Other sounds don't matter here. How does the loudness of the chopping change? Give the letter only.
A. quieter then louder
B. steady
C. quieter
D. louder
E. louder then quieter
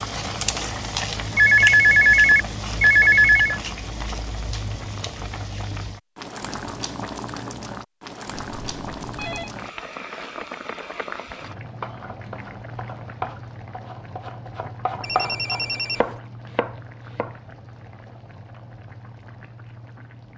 D.